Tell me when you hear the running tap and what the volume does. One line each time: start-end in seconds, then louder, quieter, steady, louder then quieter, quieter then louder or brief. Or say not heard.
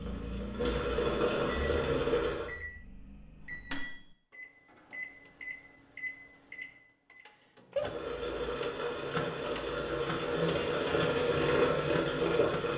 0.0-2.5 brief
7.8-12.7 louder.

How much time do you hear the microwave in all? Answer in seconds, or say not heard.
13 s.